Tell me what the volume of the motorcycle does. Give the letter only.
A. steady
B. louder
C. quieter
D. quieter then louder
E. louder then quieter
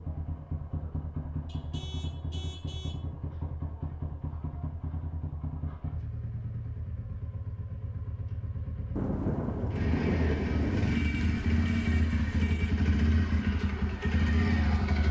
B.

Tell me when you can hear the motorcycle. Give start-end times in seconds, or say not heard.
0.0-15.0.